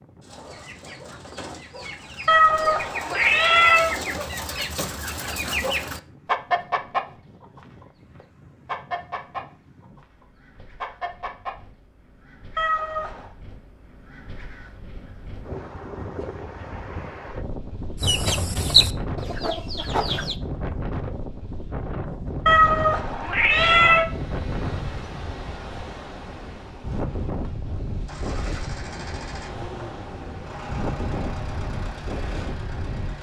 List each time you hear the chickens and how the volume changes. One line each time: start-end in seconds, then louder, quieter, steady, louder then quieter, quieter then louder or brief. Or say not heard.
0.2-11.6 louder then quieter
18.0-20.4 brief.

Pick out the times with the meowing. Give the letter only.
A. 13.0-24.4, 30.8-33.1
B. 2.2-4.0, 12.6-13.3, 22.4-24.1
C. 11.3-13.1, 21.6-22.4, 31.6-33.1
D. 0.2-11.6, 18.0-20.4
B.